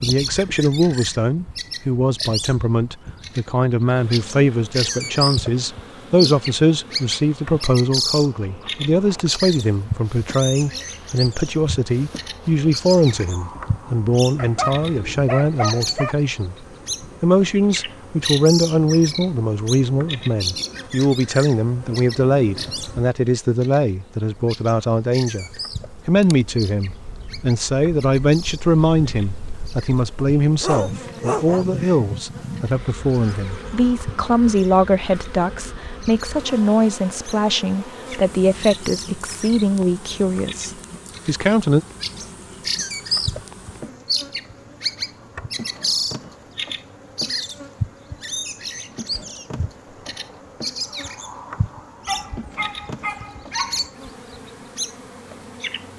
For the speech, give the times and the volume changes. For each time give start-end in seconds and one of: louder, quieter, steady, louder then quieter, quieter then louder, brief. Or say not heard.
0.0-41.9 steady.